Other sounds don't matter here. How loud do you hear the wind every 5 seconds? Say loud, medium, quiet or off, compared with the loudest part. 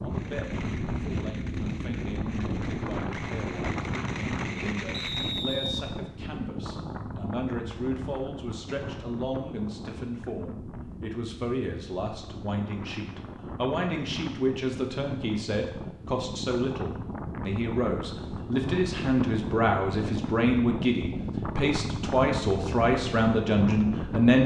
loud, medium, medium, loud, loud.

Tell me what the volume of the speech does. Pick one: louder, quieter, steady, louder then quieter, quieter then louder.
louder.